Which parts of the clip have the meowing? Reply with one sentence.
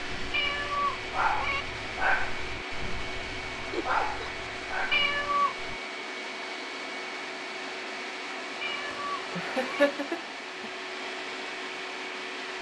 You can hear the meowing from 0.3 to 1.6 s, from 4.9 to 5.5 s and from 8.6 to 9.9 s.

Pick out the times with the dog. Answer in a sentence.
You can hear the dog from 0.0 to 5.8 s.